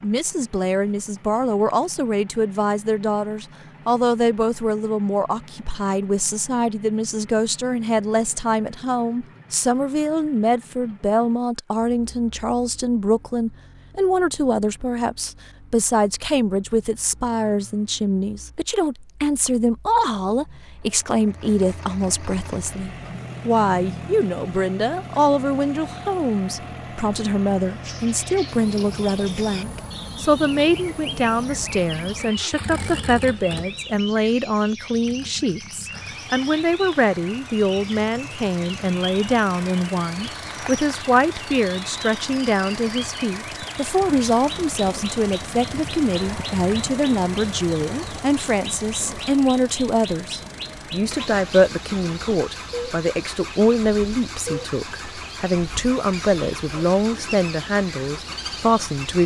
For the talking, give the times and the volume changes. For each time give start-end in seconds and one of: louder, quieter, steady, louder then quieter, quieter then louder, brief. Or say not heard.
0.0-59.2 steady.